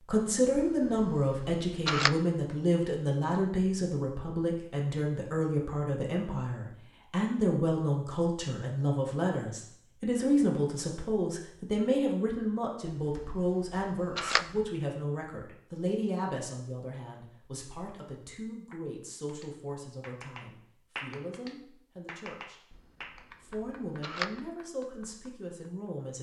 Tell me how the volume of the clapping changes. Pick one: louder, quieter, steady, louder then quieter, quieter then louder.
louder then quieter.